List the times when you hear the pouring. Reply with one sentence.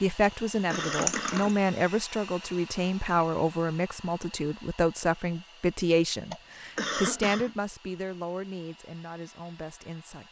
The pouring can be heard from 0.7 to 1.6 s.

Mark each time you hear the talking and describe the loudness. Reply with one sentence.
You can hear the talking from 0.0 to 10.2 s, getting quieter.